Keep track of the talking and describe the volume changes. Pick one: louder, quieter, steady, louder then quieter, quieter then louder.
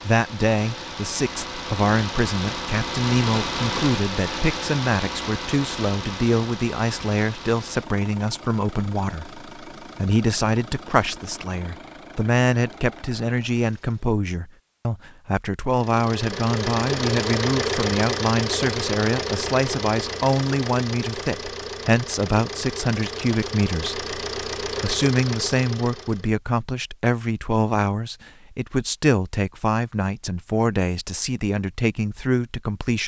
steady.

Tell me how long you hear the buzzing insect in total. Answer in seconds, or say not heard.
not heard.